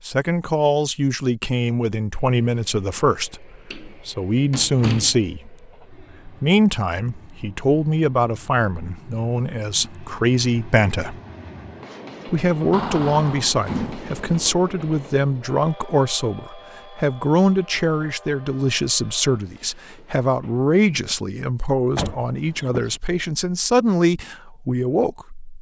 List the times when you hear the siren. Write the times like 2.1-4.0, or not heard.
not heard.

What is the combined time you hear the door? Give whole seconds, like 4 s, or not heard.
4 s.